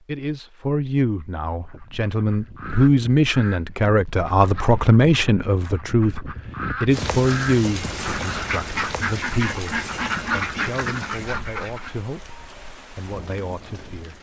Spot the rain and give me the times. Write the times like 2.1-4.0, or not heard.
6.9-14.1.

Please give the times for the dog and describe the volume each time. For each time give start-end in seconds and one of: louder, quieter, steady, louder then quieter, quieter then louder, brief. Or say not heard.
not heard.